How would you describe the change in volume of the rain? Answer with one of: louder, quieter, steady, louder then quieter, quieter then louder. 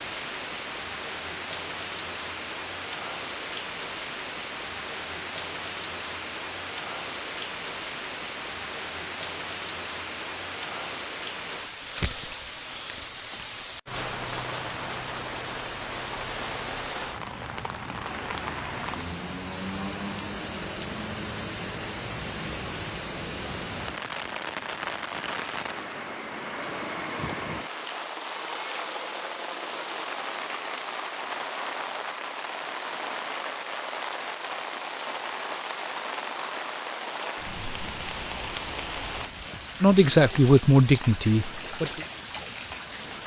steady.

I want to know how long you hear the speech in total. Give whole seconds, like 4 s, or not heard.
2 s.